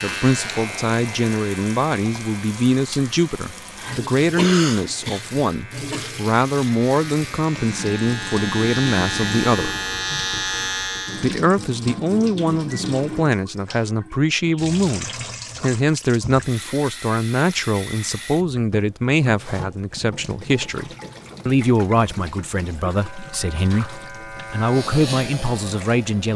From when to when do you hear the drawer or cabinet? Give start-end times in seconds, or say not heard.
not heard.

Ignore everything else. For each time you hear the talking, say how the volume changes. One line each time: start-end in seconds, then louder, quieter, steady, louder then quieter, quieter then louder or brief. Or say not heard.
0.0-9.8 steady
11.2-26.3 steady.